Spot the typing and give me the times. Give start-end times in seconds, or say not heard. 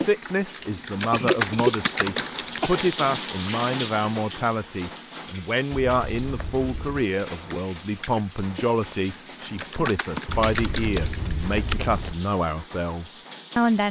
0.0-2.8, 7.3-11.8.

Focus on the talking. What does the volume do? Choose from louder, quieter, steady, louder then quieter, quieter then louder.
steady.